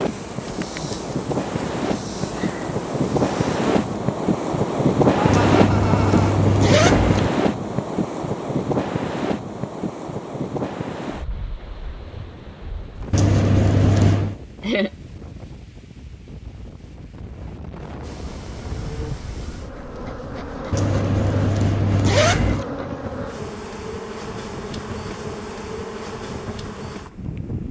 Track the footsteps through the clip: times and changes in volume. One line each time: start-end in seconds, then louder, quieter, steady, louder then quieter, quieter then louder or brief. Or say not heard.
not heard.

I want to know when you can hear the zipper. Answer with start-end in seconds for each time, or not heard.
5.2-7.3, 13.1-14.3, 20.7-22.6.